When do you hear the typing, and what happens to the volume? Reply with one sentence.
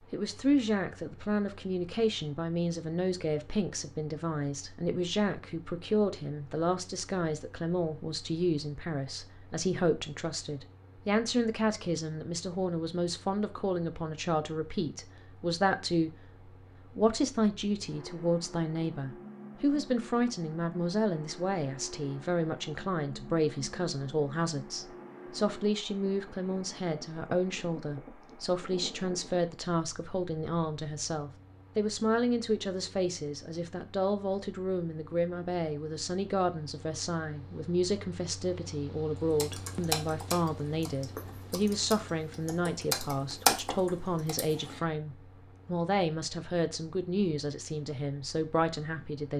The typing can be heard from 39.3 to 44.8 s, getting quieter then louder.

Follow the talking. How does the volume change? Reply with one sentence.
The volume of the talking stays about the same.